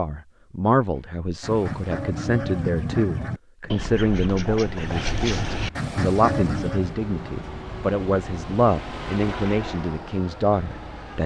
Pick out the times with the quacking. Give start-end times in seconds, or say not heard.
1.4-7.0.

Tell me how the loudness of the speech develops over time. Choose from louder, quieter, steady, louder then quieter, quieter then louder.
steady.